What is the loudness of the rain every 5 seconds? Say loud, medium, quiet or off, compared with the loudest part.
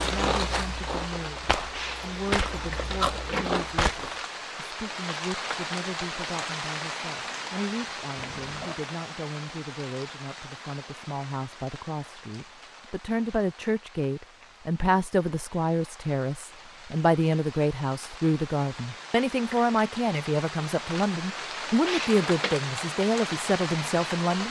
loud, loud, quiet, medium, loud.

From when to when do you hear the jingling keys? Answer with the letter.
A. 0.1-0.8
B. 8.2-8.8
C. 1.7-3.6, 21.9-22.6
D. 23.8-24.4
C.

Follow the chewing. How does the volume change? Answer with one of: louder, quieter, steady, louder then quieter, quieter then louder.
quieter then louder.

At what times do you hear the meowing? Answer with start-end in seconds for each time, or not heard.
8.2-8.8.